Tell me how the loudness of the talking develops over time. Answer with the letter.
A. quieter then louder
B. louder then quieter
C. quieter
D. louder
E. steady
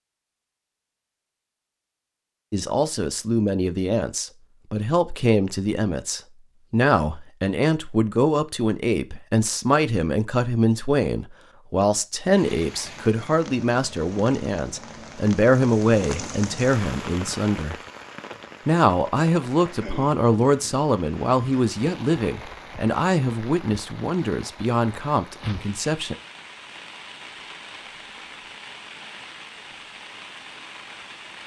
E.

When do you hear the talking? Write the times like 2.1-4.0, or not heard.
2.5-17.8, 18.6-26.1.